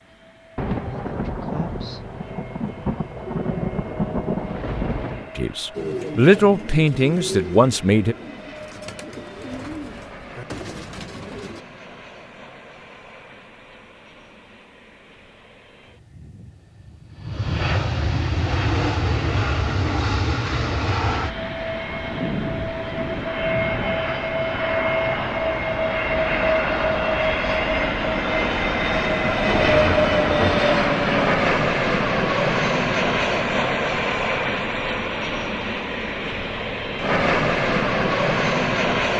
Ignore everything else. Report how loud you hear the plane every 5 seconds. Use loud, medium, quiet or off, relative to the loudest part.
quiet, quiet, quiet, medium, medium, loud, loud, loud.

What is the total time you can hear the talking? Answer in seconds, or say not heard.
3 s.